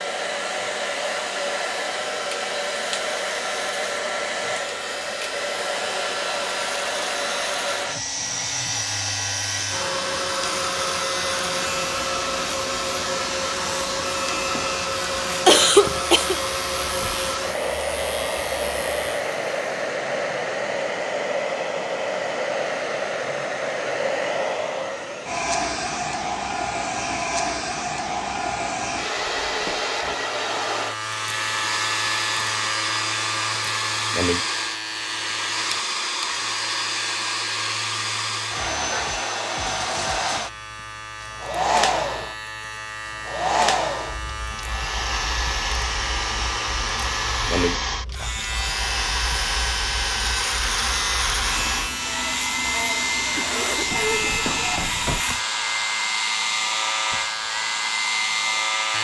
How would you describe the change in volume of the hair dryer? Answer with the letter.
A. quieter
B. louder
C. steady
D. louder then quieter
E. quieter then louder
C.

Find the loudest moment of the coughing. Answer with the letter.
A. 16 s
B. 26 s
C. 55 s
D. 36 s
A.